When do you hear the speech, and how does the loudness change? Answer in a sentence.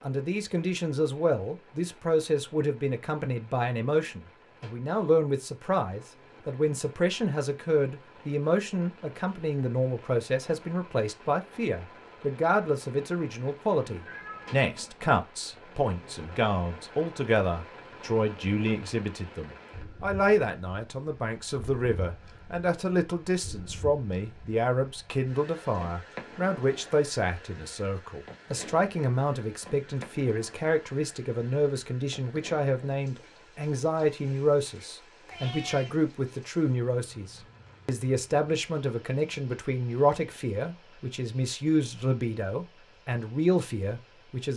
You can hear the speech from 0.0 to 44.5 s, at a steady volume.